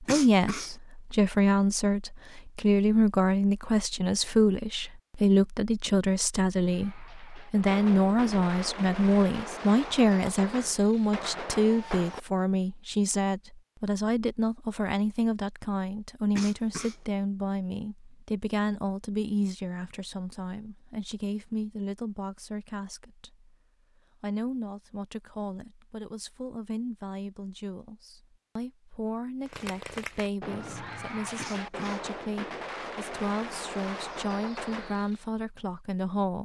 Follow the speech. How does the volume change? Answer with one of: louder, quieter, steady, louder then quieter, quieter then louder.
quieter.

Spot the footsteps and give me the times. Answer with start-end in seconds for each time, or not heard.
not heard.